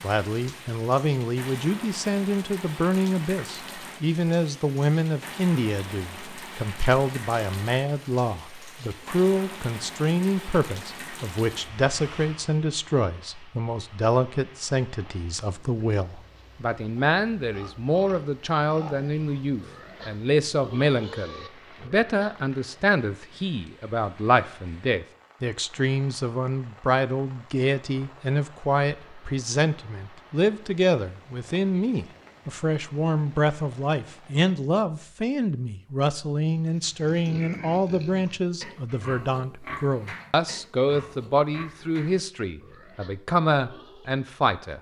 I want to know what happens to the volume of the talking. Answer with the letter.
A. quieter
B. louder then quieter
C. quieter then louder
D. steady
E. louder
D.